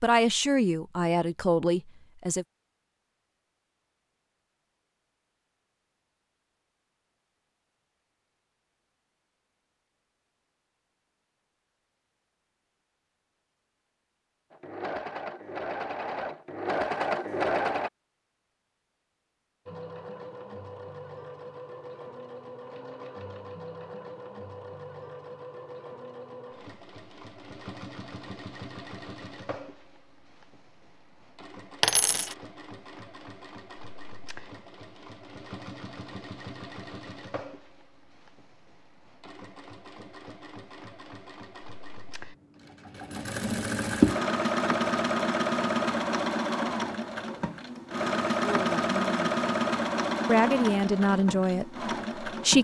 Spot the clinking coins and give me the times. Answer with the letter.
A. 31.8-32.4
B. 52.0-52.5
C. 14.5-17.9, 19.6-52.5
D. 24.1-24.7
A.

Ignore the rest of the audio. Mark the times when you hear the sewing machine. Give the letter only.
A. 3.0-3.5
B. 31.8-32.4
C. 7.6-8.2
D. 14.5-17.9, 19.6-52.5
D.